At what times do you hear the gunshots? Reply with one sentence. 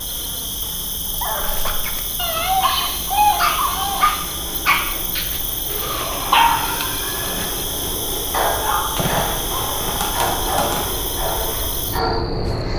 The gunshots can be heard from 8.9 to 10.9 s.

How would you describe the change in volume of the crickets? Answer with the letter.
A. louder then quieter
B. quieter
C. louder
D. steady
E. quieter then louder
D.